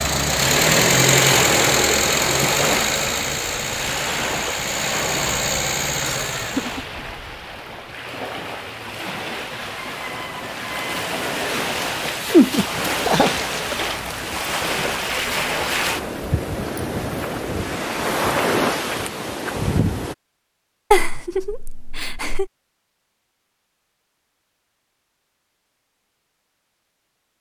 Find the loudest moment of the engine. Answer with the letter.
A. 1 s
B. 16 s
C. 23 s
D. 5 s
A.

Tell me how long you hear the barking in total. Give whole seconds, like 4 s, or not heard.
not heard.